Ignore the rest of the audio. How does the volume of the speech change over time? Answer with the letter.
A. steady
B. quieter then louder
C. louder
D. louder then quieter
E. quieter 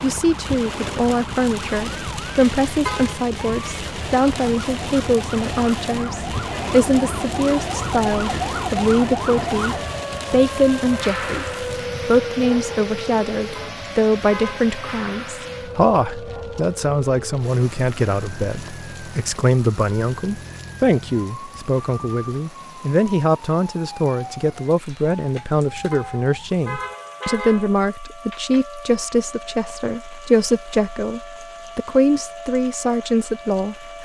A.